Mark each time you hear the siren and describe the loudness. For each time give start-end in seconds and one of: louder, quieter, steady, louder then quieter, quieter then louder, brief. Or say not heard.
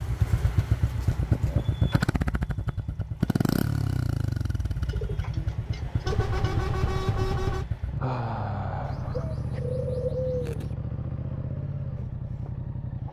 not heard.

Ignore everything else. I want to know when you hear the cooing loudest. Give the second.
10 s.